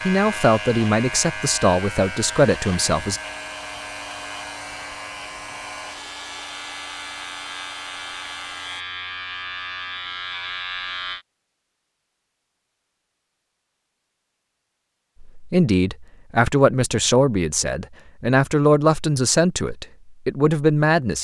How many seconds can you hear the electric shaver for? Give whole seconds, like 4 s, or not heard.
11 s.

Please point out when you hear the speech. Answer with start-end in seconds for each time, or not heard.
0.0-3.2, 15.3-21.1.